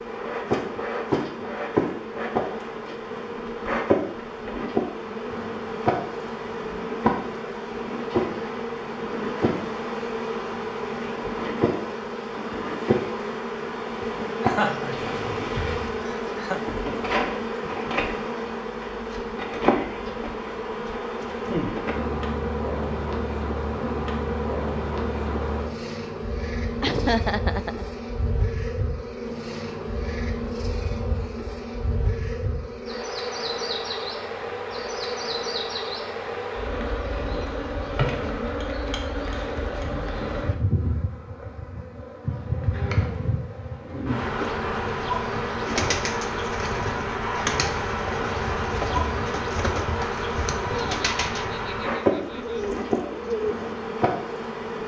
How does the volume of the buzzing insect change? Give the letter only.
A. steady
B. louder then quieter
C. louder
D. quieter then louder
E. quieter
A.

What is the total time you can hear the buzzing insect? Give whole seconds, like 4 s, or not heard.
55 s.